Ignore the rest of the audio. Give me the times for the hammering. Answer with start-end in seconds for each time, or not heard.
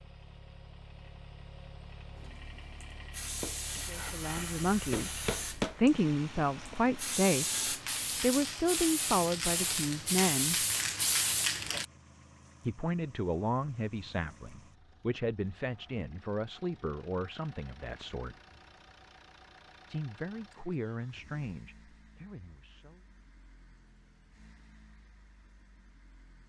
3.4-5.8.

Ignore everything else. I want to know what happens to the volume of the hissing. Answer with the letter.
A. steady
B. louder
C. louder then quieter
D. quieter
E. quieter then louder
B.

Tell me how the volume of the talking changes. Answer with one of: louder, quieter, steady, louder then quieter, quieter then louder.
quieter.